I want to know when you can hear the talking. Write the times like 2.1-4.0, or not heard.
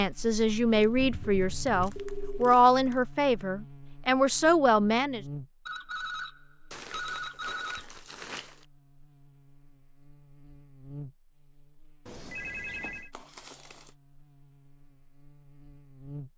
0.0-5.2.